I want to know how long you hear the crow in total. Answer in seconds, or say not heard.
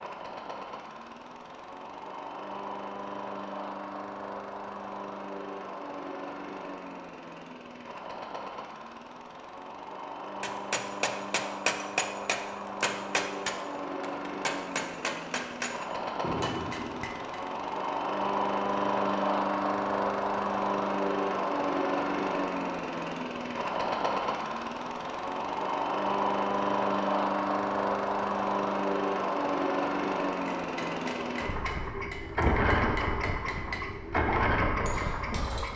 not heard.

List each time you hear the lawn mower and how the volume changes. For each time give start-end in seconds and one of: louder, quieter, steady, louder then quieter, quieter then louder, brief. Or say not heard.
0.0-35.7 louder.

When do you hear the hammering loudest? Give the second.
12 s.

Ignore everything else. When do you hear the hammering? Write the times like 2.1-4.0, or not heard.
10.4-17.4, 30.3-35.7.